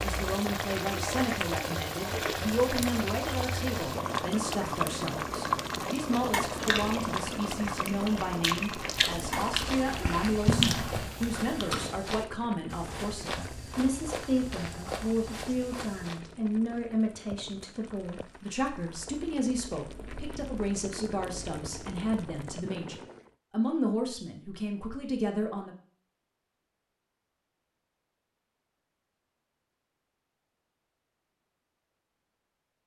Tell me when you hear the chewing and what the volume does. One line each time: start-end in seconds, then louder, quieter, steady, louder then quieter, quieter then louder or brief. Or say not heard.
6.5-11.8 louder.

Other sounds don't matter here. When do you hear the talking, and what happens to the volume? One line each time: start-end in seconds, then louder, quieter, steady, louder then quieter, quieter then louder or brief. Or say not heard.
0.0-25.8 steady.